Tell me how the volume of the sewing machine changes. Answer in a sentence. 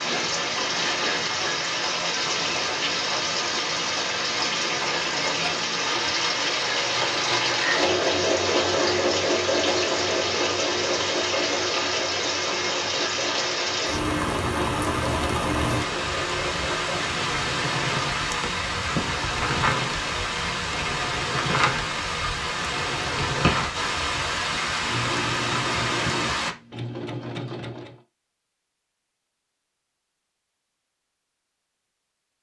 The volume of the sewing machine goes up, then down.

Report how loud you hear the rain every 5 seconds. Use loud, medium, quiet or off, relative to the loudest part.
loud, loud, loud, loud, loud, loud, off.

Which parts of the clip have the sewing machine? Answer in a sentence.
You can hear the sewing machine from 0.0 to 28.0 s.